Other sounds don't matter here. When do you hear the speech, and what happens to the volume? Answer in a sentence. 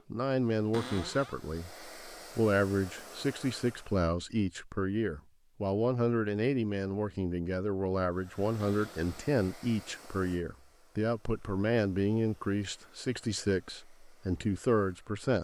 You can hear the speech from 0.1 to 15.3 s, at a steady volume.